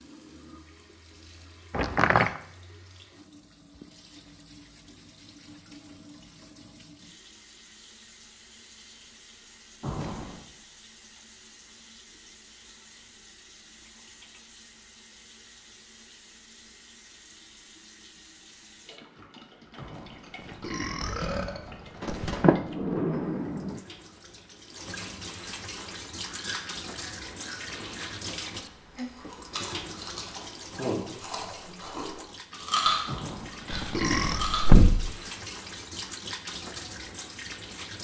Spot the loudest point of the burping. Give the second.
34 s.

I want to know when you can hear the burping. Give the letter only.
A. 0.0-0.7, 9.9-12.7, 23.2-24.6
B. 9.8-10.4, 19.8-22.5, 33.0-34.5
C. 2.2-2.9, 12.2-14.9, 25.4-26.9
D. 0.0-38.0
B.